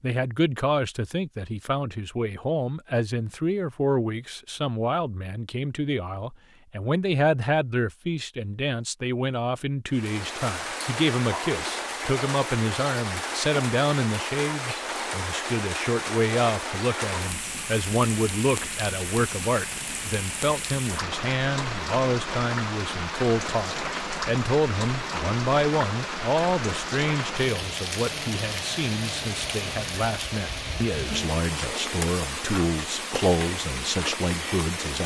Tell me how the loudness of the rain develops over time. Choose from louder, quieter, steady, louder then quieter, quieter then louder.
steady.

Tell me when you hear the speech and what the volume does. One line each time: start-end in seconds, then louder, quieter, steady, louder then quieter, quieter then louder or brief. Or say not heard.
0.0-35.0 steady.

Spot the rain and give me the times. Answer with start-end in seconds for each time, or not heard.
9.9-35.0.